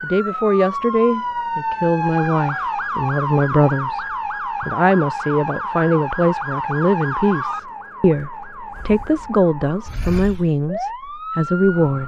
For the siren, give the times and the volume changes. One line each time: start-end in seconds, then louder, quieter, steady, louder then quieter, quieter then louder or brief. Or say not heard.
0.0-12.0 quieter.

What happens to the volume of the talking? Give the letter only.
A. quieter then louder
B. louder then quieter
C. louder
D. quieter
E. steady
E.